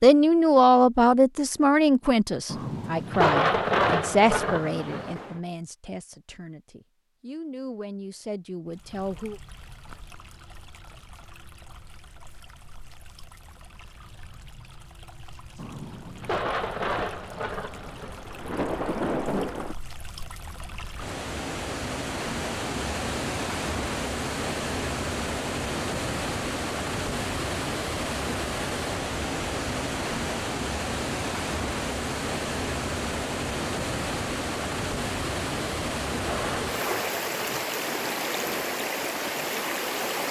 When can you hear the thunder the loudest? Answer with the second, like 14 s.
3 s.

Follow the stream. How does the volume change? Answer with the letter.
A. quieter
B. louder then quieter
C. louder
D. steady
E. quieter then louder
C.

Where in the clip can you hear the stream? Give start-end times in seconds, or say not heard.
8.7-40.2.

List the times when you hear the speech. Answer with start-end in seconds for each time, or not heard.
0.0-9.4.